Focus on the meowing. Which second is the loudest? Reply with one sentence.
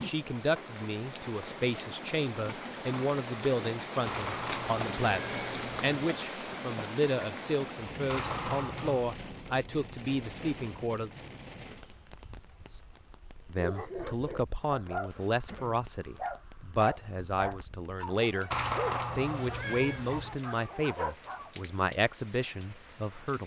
The volume of the meowing peaks at 19 seconds.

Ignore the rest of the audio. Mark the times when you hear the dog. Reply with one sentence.
You can hear the dog from 13.6 to 21.5 s.